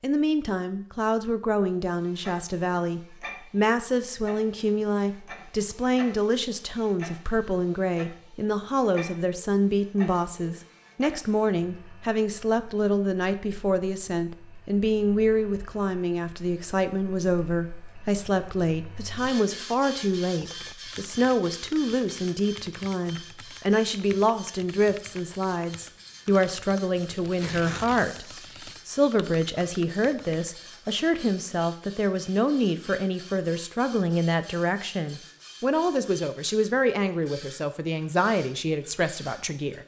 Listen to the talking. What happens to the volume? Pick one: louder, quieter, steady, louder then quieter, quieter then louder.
steady.